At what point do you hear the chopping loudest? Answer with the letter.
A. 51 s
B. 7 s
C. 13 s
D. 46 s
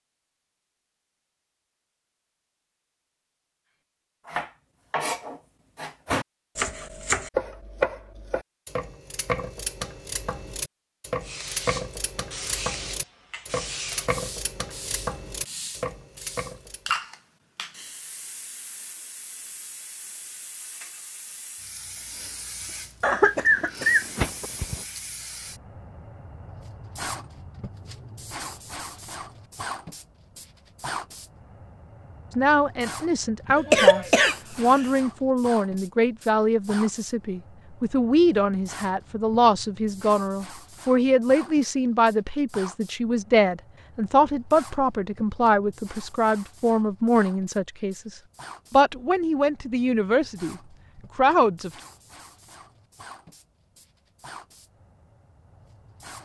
B.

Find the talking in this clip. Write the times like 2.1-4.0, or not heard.
32.4-51.7.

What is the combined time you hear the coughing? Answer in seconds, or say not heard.
3 s.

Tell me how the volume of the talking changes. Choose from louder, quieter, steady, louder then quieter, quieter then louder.
steady.